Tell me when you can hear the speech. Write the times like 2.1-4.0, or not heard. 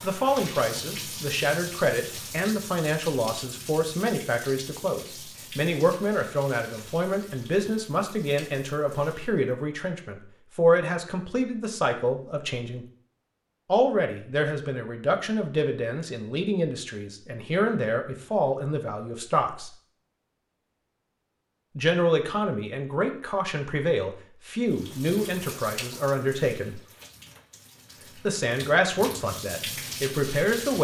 0.0-12.8, 13.7-19.7, 21.8-26.8, 28.2-30.7.